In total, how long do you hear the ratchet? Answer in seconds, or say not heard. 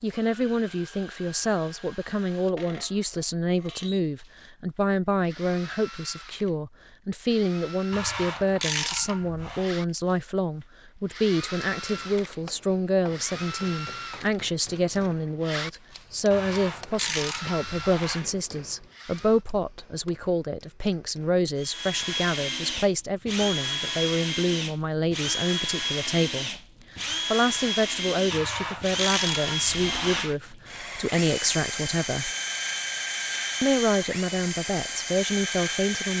6 s.